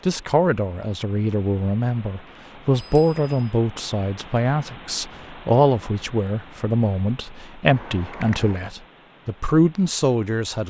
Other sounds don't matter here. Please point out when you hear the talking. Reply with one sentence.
The talking can be heard from 0.1 to 10.6 s.